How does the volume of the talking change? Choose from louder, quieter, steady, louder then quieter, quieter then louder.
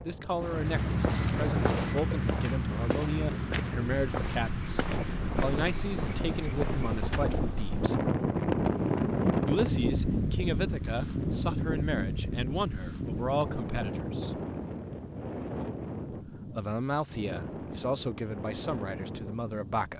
steady.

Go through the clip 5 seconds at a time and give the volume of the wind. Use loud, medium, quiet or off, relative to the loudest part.
medium, loud, loud, medium.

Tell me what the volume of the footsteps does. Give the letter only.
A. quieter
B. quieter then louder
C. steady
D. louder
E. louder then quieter
A.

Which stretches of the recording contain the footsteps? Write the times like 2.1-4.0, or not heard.
0.3-7.4.